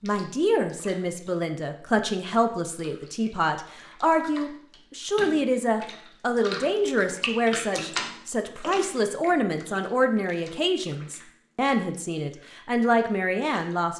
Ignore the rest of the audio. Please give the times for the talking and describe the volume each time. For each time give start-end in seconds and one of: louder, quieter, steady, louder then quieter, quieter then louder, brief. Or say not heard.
0.0-13.9 steady.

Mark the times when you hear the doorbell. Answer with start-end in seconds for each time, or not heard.
not heard.